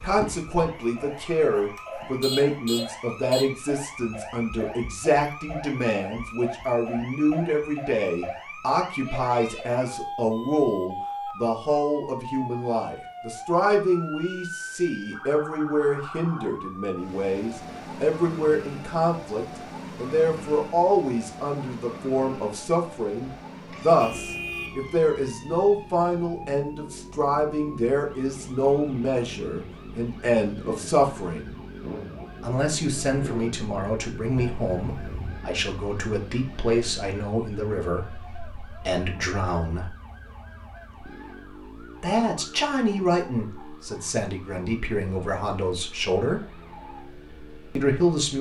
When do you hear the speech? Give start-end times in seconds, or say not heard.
0.0-31.6, 32.4-40.0, 42.0-46.4, 47.8-48.3.